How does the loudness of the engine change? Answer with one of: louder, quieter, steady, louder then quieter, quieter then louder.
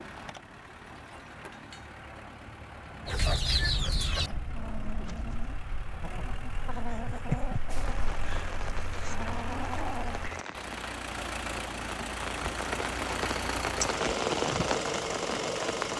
louder.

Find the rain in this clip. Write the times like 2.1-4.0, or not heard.
7.7-15.9.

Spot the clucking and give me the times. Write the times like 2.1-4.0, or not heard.
3.0-10.2.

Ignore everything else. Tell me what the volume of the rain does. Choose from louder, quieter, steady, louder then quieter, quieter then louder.
louder.